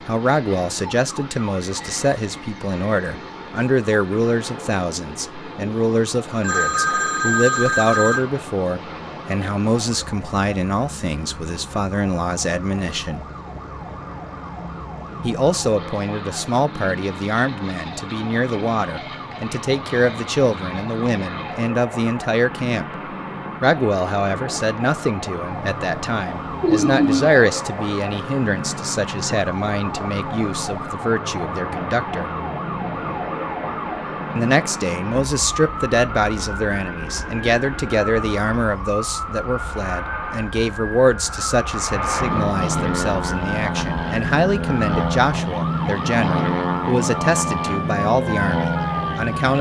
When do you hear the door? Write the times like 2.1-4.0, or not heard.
not heard.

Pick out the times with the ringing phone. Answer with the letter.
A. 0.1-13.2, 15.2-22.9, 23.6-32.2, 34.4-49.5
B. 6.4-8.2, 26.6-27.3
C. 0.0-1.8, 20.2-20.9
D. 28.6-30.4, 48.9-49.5
B.